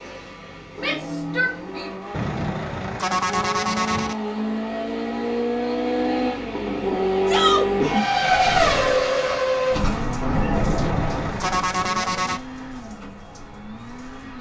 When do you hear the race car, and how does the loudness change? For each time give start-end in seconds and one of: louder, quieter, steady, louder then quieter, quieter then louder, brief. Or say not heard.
0.0-14.3 louder then quieter.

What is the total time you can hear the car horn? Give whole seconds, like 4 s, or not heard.
4 s.